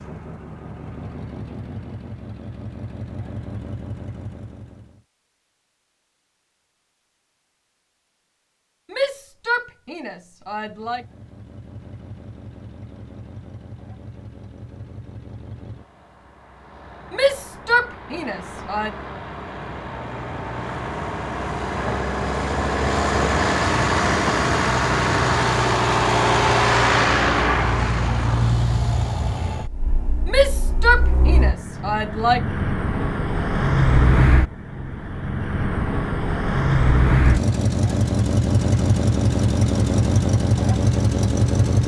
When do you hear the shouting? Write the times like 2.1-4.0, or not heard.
8.9-11.1, 17.1-18.9, 30.2-32.5.